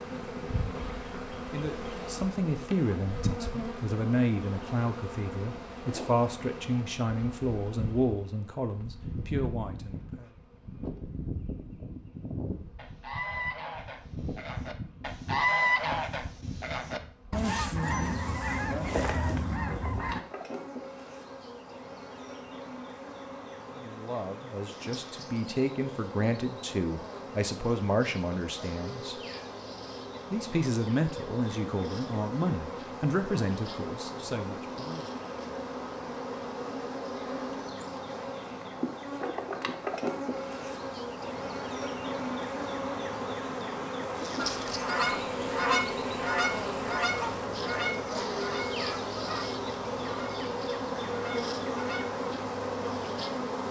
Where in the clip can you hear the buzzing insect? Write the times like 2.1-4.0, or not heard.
0.0-53.6.